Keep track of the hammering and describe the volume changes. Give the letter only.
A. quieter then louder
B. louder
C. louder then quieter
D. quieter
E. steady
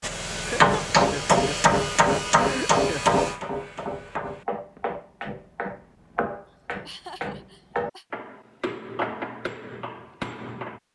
D.